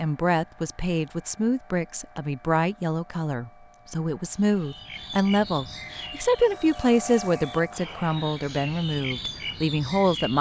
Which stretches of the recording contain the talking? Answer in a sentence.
The talking can be heard from 0.0 to 10.3 s.